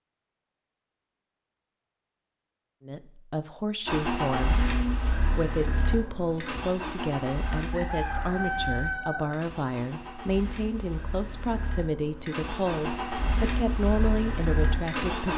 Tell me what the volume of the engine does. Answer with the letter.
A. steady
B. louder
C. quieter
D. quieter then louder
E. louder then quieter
D.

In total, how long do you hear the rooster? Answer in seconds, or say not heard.
2 s.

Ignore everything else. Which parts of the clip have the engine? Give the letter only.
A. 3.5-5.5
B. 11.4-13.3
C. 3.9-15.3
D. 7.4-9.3
C.